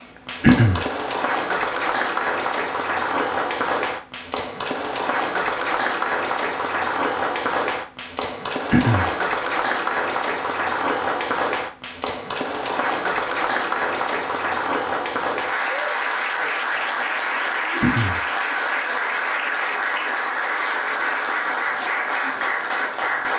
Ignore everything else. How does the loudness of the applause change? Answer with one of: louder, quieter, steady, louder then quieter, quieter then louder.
steady.